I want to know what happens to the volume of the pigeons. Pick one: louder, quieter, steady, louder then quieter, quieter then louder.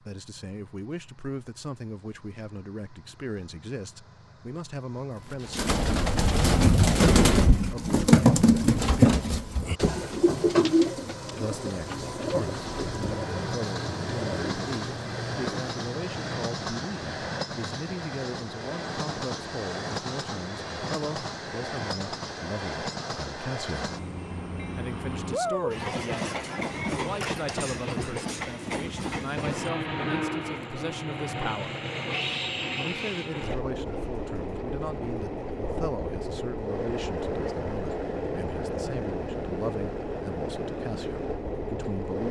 quieter.